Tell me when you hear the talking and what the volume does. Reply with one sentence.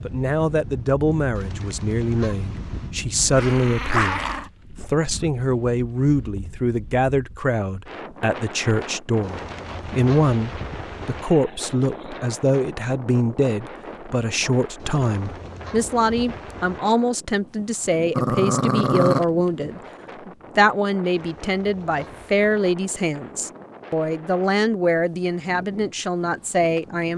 The talking can be heard from 0.0 to 27.1 s, at a steady volume.